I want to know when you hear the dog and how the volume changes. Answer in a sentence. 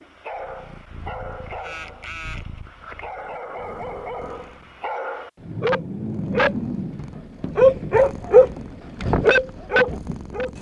The dog can be heard from 0.0 to 10.5 s, getting louder.